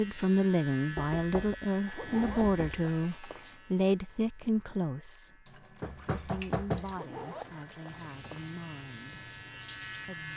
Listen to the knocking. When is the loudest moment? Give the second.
7 s.